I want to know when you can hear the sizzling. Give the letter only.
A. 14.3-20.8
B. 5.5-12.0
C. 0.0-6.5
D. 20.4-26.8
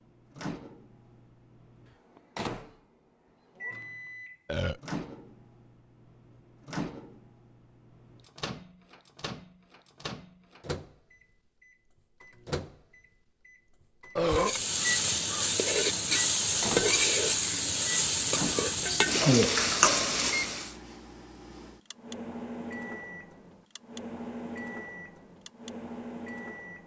A.